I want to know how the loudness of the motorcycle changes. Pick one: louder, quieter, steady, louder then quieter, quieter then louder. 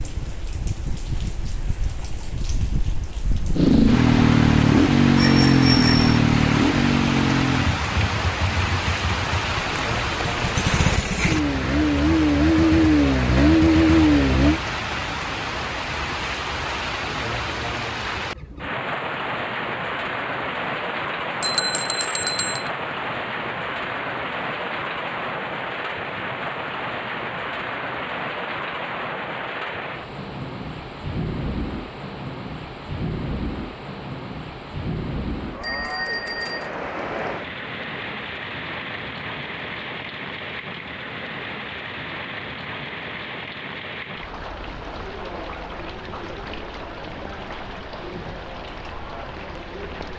quieter then louder.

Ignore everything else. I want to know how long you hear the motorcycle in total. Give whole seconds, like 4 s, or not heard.
11 s.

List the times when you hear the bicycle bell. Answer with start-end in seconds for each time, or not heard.
5.2-6.2, 21.4-22.7, 35.6-36.7.